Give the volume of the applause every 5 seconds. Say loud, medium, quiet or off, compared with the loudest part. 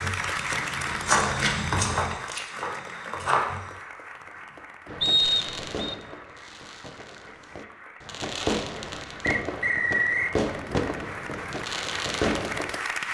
loud, medium, loud.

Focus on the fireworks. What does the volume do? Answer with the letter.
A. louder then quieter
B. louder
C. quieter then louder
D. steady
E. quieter
C.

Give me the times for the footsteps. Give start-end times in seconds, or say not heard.
0.0-3.7.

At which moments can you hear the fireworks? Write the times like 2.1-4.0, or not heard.
4.8-12.8.